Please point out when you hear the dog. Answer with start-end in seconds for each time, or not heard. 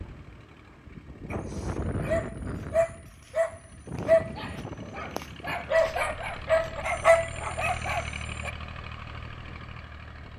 1.3-8.5.